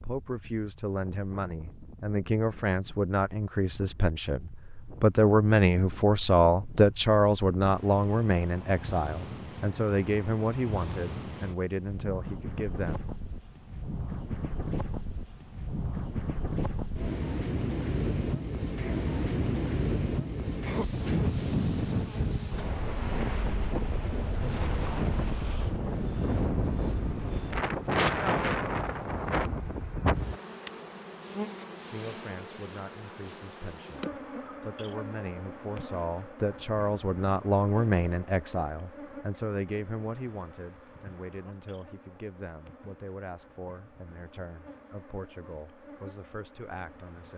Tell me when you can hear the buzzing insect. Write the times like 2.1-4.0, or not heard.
21.1-47.3.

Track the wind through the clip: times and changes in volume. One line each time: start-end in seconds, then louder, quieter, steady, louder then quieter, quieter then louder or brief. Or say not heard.
0.0-30.4 louder.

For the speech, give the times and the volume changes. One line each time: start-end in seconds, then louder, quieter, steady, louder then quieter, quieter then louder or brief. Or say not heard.
0.0-13.0 louder then quieter
31.9-47.3 louder then quieter.